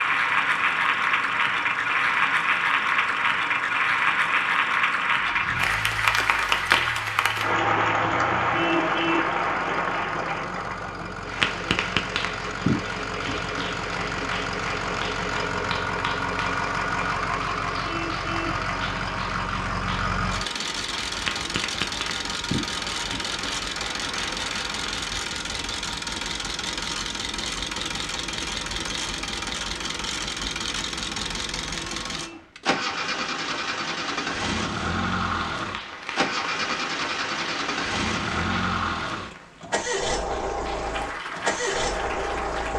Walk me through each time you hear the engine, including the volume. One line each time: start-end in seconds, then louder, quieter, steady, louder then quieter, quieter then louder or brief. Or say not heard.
0.0-42.7 louder.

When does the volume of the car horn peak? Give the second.
9 s.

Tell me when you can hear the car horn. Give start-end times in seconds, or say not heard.
8.5-9.3, 17.8-18.6, 31.7-32.5.